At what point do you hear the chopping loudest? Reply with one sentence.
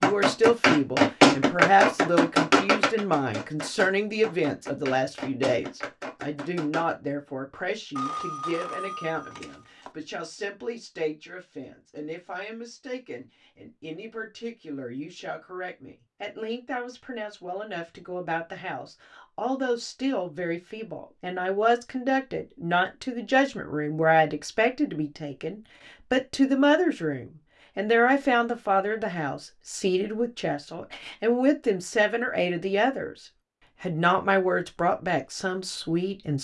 The volume of the chopping peaks at 1 second.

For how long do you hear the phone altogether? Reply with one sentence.
You can hear the phone for 2 seconds altogether.